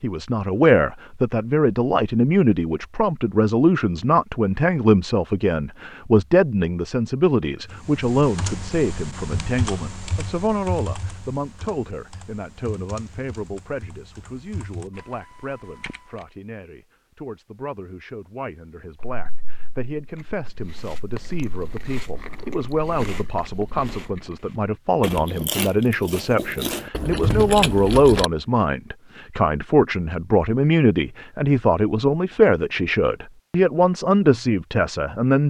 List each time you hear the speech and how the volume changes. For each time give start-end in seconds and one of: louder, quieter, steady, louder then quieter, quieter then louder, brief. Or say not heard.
0.0-35.4 quieter then louder.